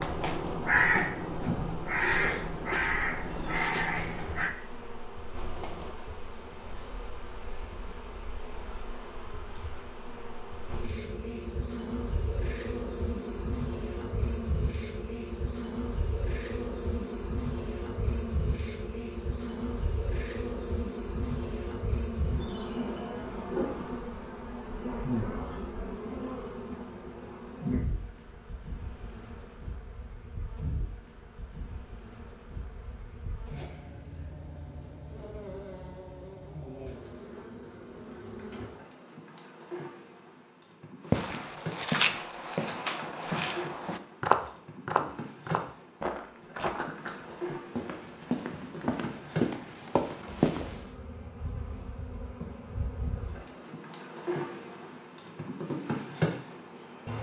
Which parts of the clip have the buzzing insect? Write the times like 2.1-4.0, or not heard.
0.0-57.1.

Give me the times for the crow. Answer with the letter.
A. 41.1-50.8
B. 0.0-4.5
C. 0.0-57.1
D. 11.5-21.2
B.